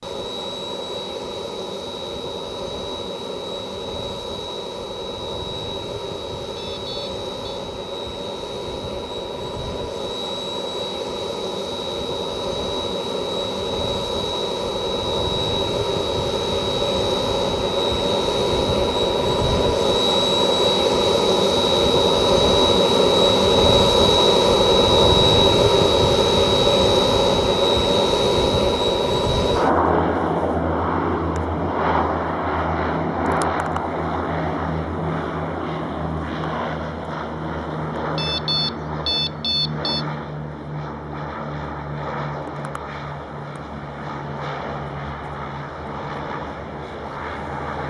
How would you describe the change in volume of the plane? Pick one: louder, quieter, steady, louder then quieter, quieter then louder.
louder then quieter.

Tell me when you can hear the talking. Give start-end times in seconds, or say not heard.
not heard.